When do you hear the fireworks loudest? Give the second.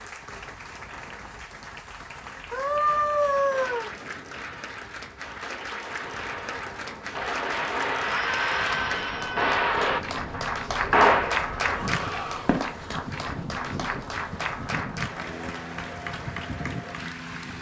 11 s.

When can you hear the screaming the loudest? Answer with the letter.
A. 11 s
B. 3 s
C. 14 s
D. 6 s
B.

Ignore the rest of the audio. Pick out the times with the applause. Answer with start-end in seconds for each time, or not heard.
0.0-17.5.